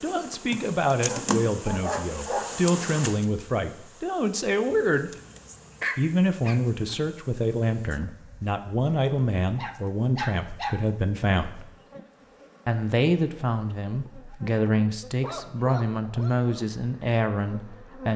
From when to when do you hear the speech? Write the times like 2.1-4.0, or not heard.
0.0-5.1, 6.0-11.7, 12.7-18.1.